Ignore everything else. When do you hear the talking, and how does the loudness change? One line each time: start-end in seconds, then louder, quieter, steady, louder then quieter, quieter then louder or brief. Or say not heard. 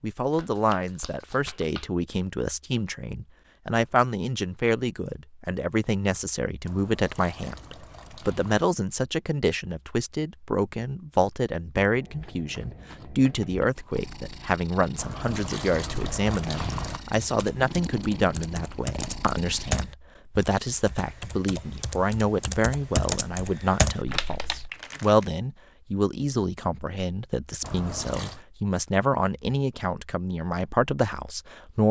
0.0-31.8 steady.